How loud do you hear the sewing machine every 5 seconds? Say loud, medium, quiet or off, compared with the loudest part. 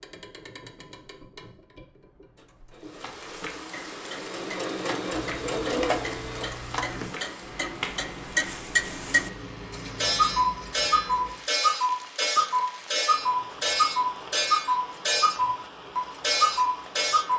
medium, loud, off, off.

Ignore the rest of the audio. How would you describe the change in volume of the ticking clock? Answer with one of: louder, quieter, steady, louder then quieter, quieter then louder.
louder.